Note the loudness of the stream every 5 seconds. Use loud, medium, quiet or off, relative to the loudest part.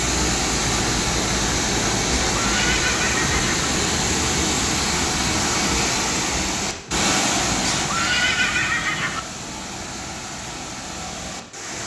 loud, loud, medium.